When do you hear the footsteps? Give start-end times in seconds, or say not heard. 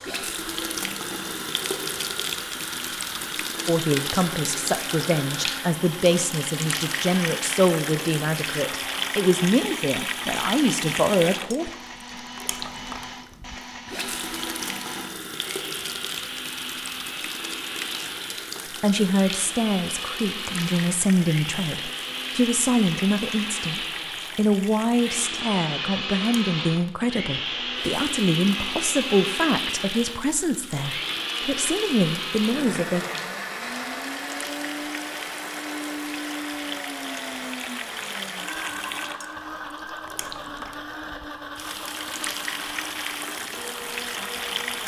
not heard.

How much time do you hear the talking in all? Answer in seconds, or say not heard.
22 s.